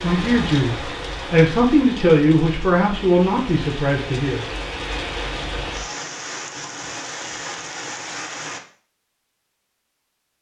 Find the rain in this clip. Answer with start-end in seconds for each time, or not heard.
0.0-8.6.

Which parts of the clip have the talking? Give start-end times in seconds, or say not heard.
0.0-4.5.